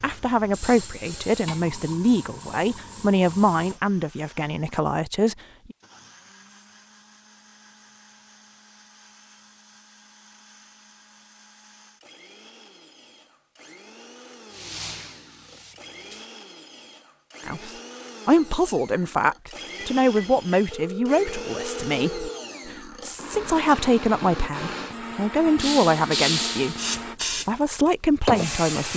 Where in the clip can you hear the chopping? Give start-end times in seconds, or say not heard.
not heard.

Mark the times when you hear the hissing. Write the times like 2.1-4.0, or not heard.
0.0-3.8, 14.4-16.3, 25.6-28.9.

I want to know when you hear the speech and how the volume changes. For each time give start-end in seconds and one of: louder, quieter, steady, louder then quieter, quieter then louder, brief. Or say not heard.
0.0-5.8 steady
17.4-28.9 steady.